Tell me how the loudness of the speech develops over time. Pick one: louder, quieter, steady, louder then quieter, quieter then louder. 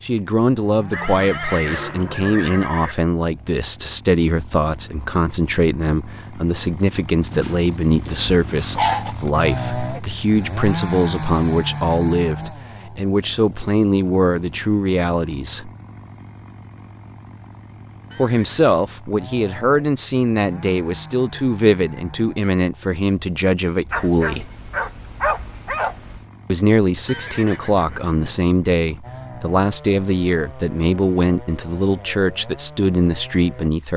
steady.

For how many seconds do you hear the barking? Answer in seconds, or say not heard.
4 s.